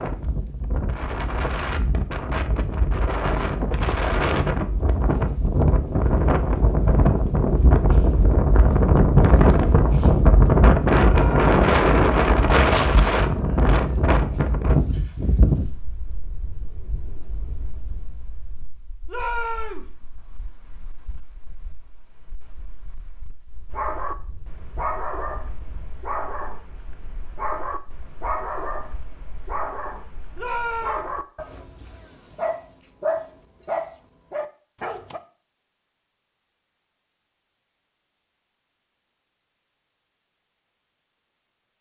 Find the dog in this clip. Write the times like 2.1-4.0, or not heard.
23.7-35.2.